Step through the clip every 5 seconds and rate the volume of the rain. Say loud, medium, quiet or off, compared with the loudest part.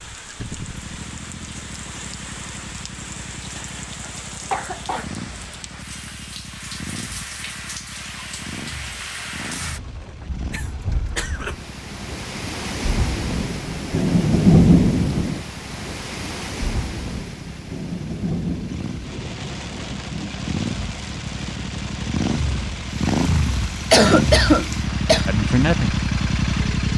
quiet, quiet, loud, medium, quiet, quiet.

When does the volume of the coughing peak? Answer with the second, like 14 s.
24 s.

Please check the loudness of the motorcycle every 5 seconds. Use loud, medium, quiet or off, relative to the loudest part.
quiet, quiet, quiet, quiet, loud, loud.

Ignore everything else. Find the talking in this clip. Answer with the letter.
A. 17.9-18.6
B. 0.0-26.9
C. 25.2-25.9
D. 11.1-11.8
C.